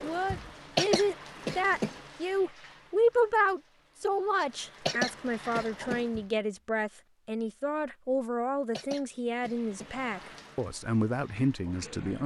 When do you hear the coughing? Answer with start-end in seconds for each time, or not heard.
0.8-1.9, 4.8-6.0, 8.7-9.9.